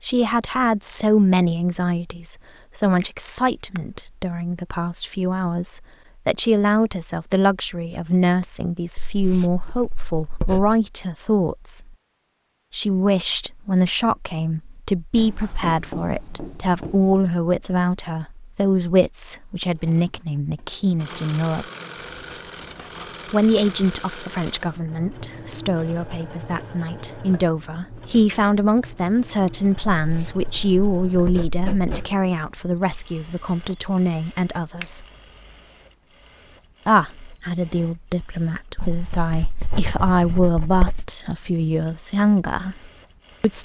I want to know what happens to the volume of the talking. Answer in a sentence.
The loudness of the talking stays about the same.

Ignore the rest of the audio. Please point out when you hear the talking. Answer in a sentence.
You can hear the talking from 0.0 to 11.9 s, from 12.7 to 21.6 s, from 23.3 to 35.0 s and from 36.9 to 43.6 s.